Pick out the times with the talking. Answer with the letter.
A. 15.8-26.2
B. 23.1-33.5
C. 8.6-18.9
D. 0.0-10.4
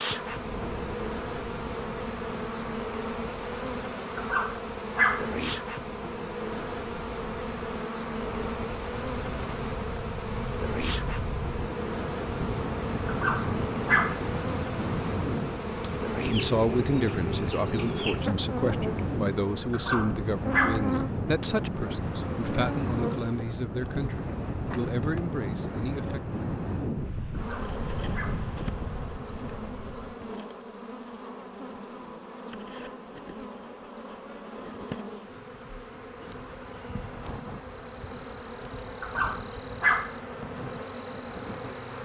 A.